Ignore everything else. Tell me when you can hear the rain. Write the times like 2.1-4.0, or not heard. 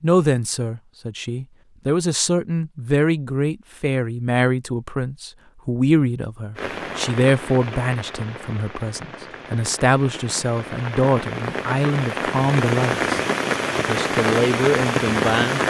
6.5-15.6.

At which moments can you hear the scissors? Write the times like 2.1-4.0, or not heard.
not heard.